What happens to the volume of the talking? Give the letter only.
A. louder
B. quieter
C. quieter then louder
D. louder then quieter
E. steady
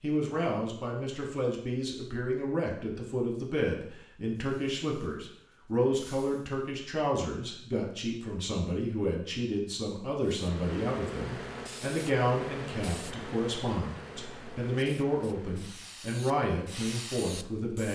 E.